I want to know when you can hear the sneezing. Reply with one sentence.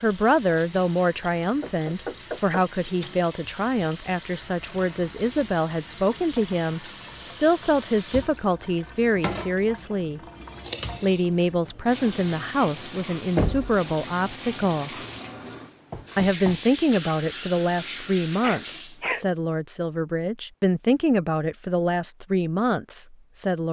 You can hear the sneezing from 18.4 to 19.2 s.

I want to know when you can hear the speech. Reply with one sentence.
The speech can be heard from 0.0 to 10.2 s, from 11.0 to 14.9 s and from 16.1 to 23.6 s.